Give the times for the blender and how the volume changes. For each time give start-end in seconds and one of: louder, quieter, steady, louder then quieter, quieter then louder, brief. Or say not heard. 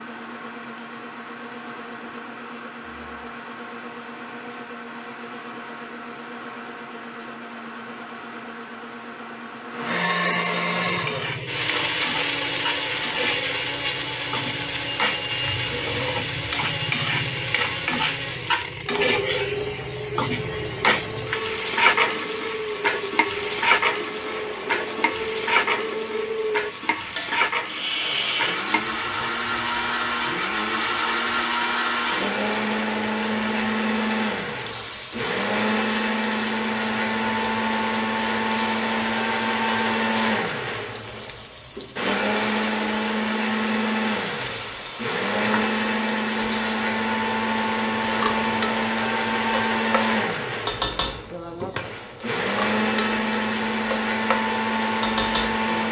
0.0-55.8 louder.